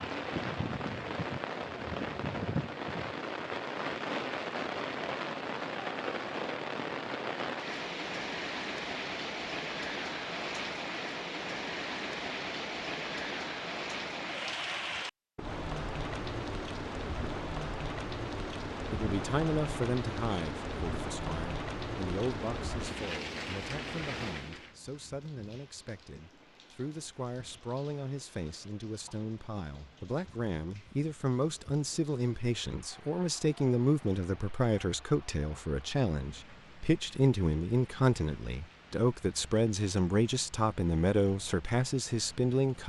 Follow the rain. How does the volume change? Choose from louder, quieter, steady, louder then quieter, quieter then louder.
quieter.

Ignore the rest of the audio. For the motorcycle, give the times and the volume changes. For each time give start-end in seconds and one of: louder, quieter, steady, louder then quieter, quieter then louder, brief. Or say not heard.
not heard.